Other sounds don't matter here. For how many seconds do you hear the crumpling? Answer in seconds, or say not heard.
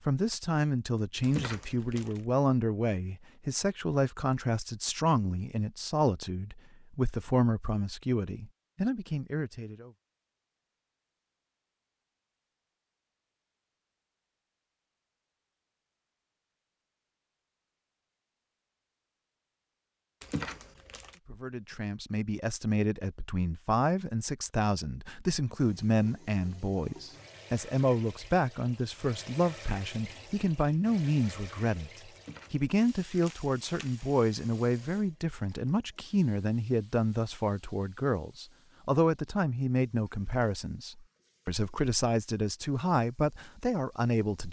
4 s.